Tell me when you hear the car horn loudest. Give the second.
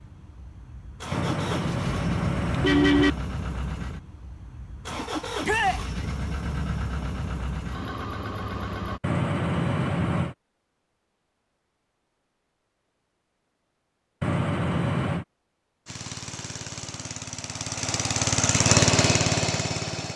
3 s.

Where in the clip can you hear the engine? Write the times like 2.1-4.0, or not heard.
0.0-9.0, 15.8-20.1.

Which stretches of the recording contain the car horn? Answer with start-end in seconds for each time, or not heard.
1.1-3.1, 9.0-10.3, 14.2-15.2.